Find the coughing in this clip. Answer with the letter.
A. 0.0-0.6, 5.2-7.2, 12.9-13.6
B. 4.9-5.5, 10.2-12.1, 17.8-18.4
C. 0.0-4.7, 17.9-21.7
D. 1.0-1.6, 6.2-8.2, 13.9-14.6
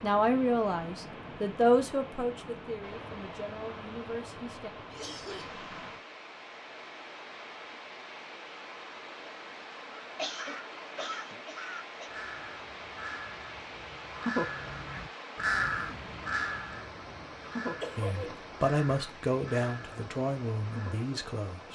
B.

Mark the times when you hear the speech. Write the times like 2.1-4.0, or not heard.
0.0-4.7, 17.9-21.7.